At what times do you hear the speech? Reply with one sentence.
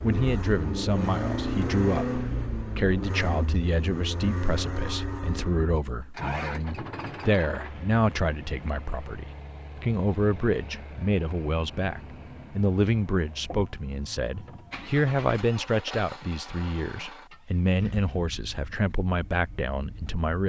The speech can be heard from 0.0 to 20.4 s.